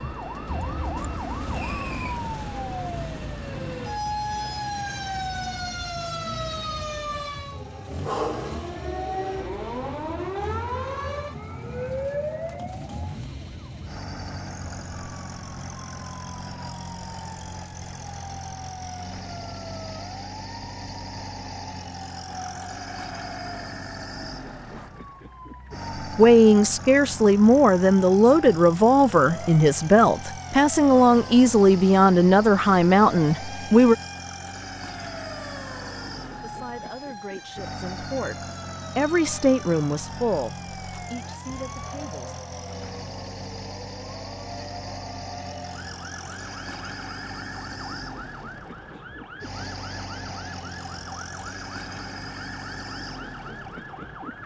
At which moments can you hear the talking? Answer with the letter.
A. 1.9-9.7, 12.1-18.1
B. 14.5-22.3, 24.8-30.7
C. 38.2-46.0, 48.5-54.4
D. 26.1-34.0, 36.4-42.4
D.